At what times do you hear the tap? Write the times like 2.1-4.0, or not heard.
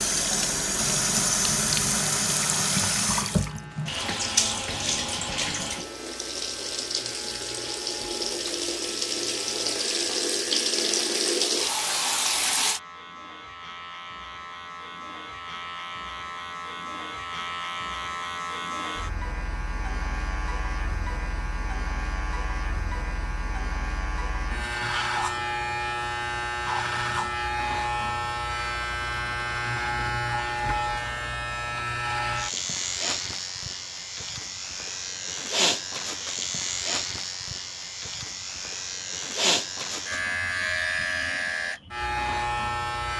0.0-12.8.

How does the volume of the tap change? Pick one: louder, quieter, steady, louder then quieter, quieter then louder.
quieter then louder.